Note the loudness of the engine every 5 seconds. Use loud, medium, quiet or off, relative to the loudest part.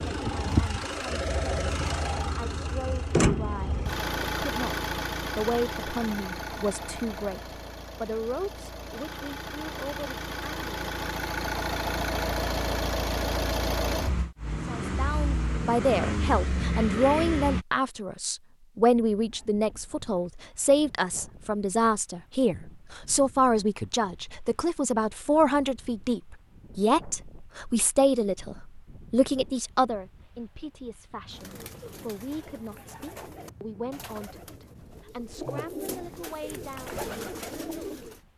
loud, medium, loud, loud, off, off, off, off.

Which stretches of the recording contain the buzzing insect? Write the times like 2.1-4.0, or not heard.
not heard.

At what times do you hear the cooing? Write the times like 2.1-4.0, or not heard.
31.3-38.2.